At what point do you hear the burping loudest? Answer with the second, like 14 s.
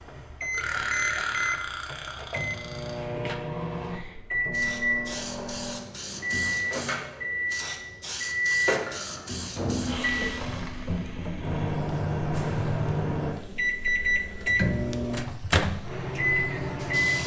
1 s.